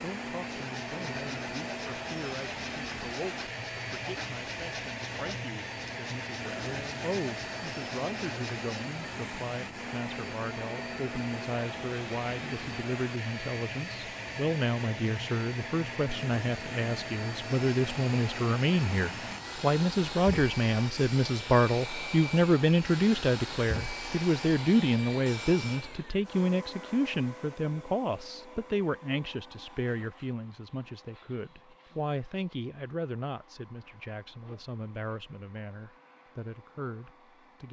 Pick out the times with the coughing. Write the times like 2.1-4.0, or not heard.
not heard.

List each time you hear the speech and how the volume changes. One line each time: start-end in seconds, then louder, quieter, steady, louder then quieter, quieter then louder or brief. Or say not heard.
0.0-37.6 louder then quieter.